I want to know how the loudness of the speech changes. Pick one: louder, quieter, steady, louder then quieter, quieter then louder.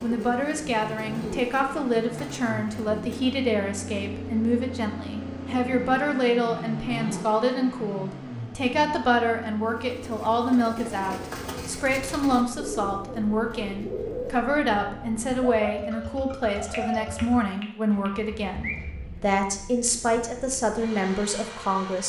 steady.